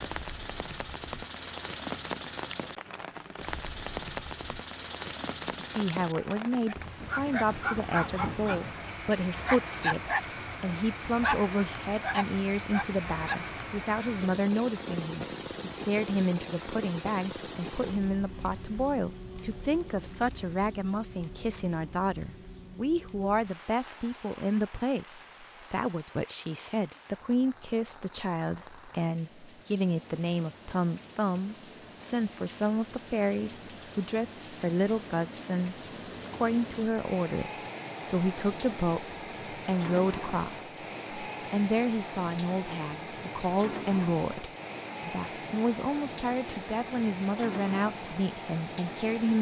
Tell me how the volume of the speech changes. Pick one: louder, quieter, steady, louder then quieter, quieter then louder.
steady.